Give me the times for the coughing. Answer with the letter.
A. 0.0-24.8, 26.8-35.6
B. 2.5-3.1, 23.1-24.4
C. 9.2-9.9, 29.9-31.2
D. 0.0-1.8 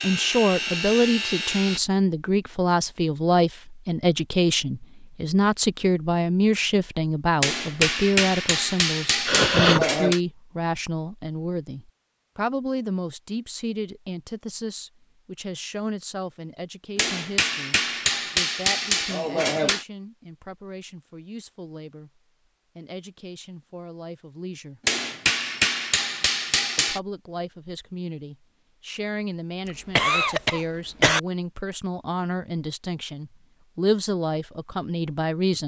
C.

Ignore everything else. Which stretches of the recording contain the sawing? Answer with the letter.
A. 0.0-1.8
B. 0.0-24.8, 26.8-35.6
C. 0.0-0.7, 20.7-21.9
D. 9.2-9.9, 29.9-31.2
A.